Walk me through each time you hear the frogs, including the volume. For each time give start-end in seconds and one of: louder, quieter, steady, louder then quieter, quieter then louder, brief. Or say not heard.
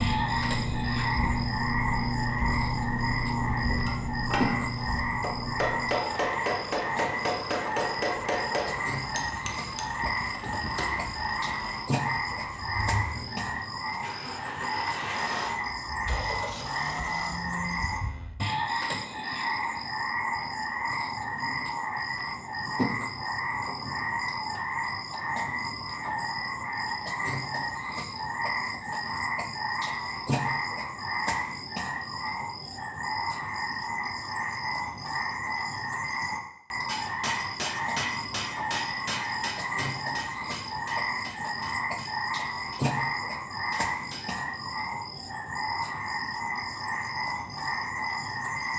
0.0-48.7 steady.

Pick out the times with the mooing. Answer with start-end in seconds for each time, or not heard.
16.0-18.4.